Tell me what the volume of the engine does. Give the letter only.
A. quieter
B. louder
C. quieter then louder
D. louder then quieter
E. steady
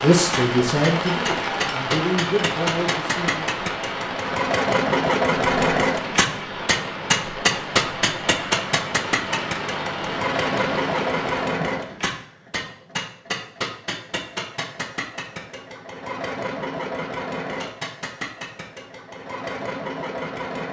D.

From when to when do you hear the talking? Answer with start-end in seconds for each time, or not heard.
0.0-3.5.